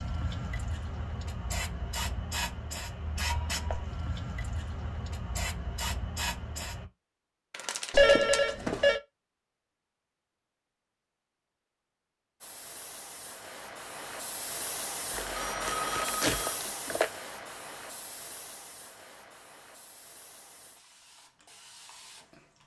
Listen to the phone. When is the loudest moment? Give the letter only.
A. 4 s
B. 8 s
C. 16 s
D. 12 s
B.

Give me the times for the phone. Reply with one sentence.
The phone can be heard from 3.2 to 3.9 s, from 7.9 to 9.0 s and from 15.3 to 16.6 s.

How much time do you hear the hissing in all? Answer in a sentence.
The hissing can be heard for 17 seconds in total.